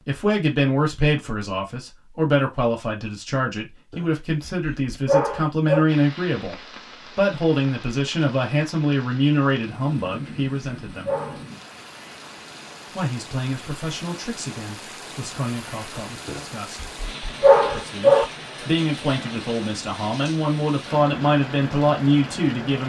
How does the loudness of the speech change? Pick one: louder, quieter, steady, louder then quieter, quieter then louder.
quieter then louder.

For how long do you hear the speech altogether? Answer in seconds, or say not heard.
20 s.